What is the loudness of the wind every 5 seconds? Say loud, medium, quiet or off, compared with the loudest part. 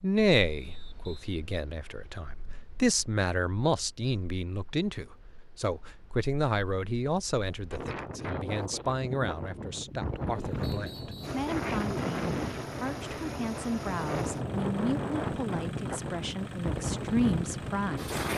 quiet, medium, loud, loud.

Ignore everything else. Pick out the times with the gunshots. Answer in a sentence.
You can't hear the gunshots here.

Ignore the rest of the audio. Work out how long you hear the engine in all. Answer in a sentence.
You can hear the engine for 7 seconds altogether.